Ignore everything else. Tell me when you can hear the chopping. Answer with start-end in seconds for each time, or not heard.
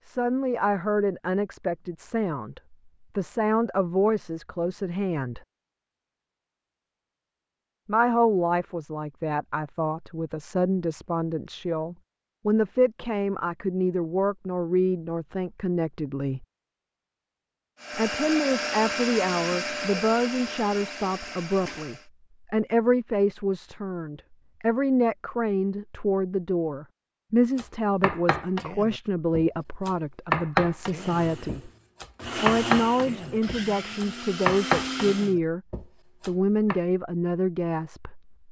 27.6-36.8.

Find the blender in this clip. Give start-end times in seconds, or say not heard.
17.8-22.1, 30.9-35.4.